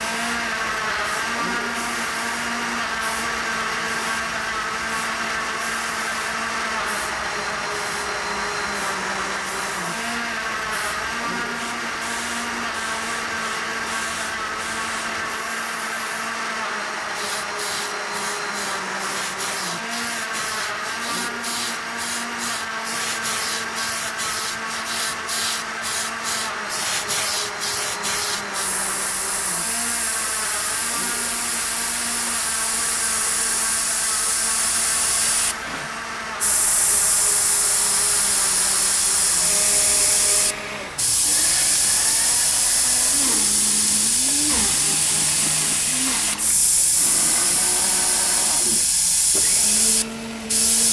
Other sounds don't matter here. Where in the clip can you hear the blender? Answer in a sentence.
The blender can be heard from 0.0 to 50.8 s.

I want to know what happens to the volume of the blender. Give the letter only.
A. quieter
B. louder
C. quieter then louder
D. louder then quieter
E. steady
A.